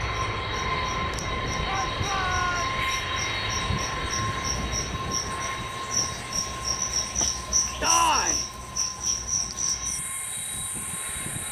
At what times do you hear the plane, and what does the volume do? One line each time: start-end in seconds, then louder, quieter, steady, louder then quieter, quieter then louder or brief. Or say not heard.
0.0-11.4 quieter.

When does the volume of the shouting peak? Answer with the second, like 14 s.
8 s.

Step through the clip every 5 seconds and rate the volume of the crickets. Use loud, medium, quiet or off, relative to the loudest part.
medium, loud, quiet.